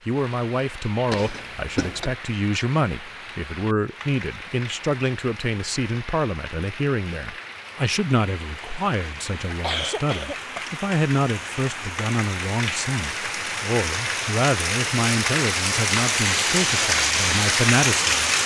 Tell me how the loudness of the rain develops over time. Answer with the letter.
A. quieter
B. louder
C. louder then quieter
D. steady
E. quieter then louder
B.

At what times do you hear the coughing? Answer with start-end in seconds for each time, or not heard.
1.1-2.1, 9.5-10.7.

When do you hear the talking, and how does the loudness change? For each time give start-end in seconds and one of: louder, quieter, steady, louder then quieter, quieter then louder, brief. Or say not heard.
0.1-18.1 steady.